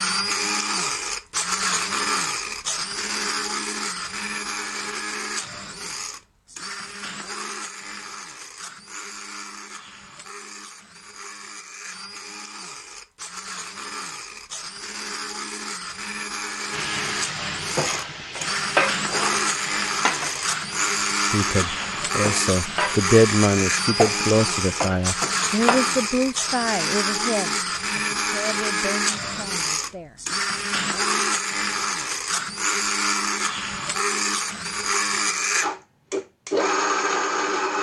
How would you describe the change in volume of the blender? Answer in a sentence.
The volume of the blender goes down, then up.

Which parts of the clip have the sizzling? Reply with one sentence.
The sizzling can be heard from 16.7 to 25.9 s.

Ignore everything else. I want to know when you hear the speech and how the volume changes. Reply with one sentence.
You can hear the speech from 21.1 to 30.2 s, getting quieter.